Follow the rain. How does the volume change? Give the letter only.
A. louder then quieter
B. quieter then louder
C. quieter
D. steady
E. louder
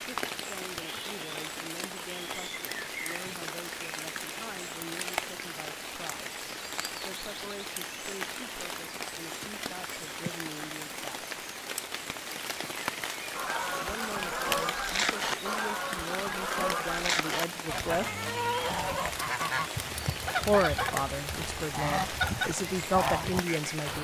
D.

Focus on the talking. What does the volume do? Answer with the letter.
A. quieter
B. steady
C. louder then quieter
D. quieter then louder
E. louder
E.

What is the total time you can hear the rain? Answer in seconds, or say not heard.
24 s.